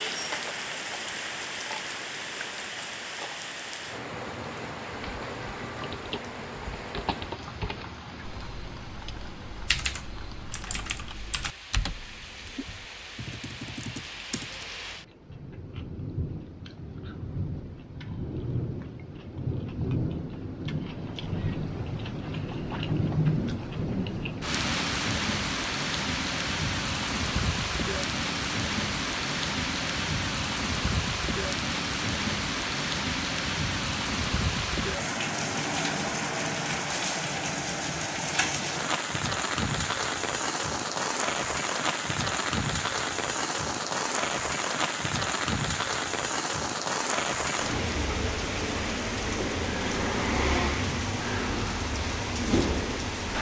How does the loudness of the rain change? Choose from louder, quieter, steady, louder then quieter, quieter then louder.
louder.